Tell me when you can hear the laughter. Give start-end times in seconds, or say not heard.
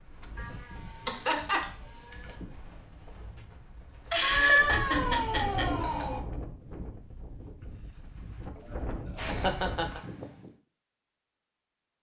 1.0-1.6, 4.1-5.8, 8.6-10.0.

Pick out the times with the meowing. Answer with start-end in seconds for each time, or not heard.
0.3-2.4, 4.2-6.2, 9.2-10.2.